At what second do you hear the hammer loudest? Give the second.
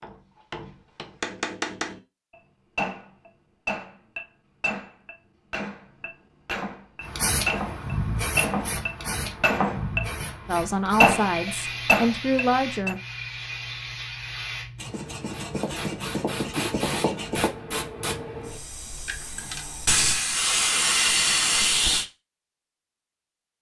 11 s.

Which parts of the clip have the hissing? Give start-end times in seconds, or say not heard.
7.0-22.1.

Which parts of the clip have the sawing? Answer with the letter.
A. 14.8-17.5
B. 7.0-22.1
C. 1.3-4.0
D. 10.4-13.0
A.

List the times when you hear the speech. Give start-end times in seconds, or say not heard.
10.4-13.0.